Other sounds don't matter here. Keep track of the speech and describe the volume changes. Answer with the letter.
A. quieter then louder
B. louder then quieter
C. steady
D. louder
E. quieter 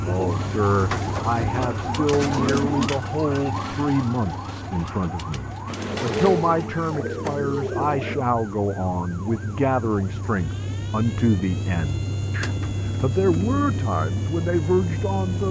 C.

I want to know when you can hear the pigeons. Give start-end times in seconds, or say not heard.
0.1-2.9, 5.7-8.3, 12.4-13.8.